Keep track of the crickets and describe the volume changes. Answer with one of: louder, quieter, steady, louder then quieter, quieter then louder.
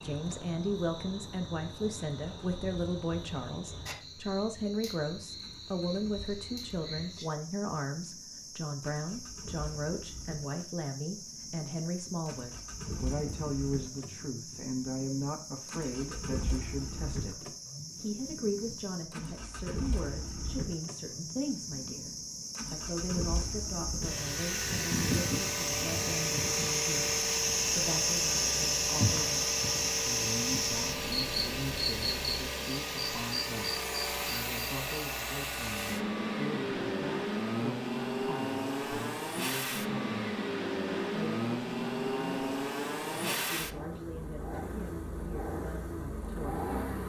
louder.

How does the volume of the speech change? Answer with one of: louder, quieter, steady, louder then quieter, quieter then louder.
quieter.